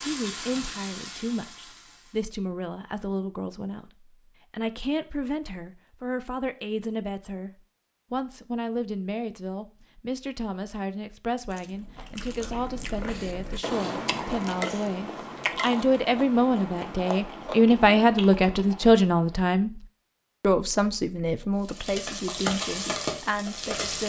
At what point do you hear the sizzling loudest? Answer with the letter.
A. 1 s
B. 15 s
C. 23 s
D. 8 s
C.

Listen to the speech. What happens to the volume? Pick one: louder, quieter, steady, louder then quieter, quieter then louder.
louder then quieter.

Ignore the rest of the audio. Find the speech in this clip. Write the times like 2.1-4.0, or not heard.
0.1-7.5, 8.1-24.0.